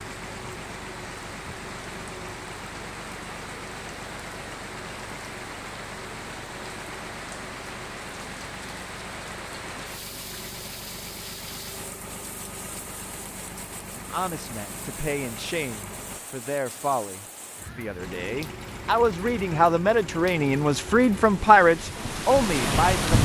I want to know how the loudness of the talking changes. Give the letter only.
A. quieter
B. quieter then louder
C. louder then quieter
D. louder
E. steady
D.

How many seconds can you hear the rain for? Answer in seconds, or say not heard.
23 s.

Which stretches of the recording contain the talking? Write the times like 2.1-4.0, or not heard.
13.9-23.1.